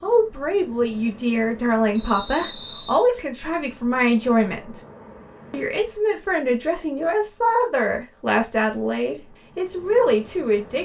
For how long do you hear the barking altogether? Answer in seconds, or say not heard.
not heard.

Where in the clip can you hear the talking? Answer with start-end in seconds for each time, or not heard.
0.0-4.8, 5.5-10.8.